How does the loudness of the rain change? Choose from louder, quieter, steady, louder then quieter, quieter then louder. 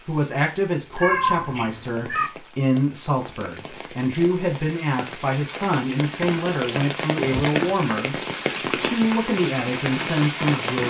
louder.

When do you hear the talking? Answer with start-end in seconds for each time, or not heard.
0.1-10.8.